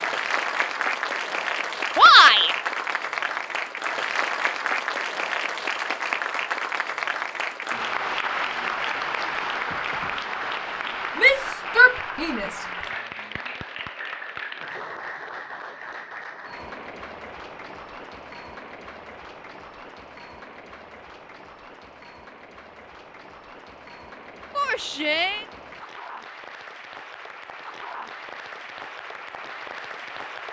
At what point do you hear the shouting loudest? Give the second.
2 s.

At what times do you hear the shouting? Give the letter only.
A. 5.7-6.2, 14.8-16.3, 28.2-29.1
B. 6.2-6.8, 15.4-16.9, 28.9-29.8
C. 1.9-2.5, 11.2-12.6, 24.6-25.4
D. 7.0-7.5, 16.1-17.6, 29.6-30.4
C.